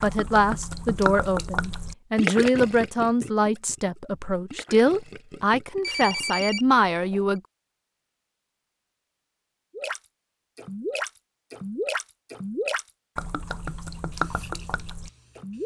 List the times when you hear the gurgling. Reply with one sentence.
The gurgling can be heard from 0.0 to 6.5 s and from 9.7 to 15.6 s.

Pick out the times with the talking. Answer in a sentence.
The talking can be heard from 0.0 to 7.4 s.